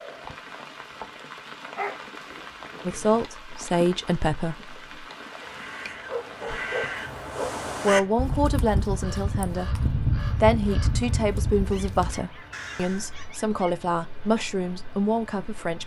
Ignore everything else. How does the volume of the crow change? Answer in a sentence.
The loudness of the crow goes up, then down.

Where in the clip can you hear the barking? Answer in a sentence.
You can hear the barking from 1.8 to 3.2 s, from 5.4 to 7.7 s and from 11.7 to 13.8 s.